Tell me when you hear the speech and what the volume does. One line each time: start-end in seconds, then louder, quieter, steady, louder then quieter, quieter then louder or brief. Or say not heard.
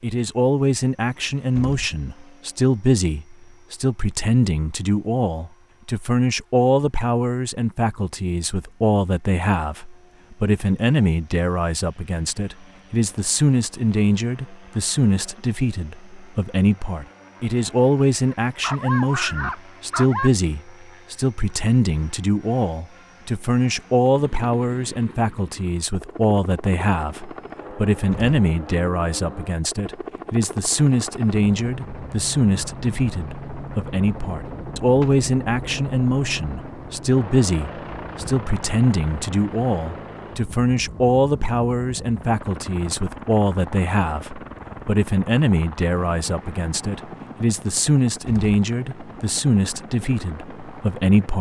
0.0-51.3 steady.